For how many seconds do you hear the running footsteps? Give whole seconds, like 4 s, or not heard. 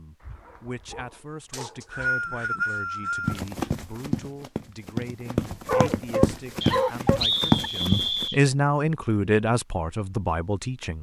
5 s.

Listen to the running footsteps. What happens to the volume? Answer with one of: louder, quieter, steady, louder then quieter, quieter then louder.
louder.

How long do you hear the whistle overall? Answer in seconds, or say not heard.
4 s.